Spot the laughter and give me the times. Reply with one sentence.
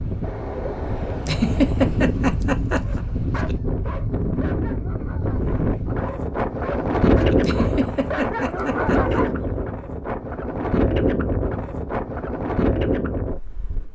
You can hear the laughter from 1.2 to 3.0 s and from 7.4 to 9.2 s.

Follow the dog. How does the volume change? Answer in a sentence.
The loudness of the dog goes down, then up.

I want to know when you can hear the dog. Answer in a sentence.
You can hear the dog from 2.9 to 9.3 s.